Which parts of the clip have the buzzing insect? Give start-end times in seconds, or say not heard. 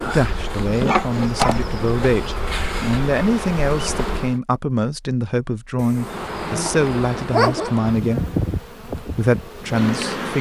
0.0-4.4, 5.9-10.3.